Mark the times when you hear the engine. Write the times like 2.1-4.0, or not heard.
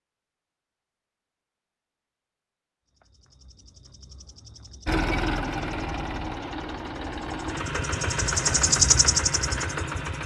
4.8-10.2.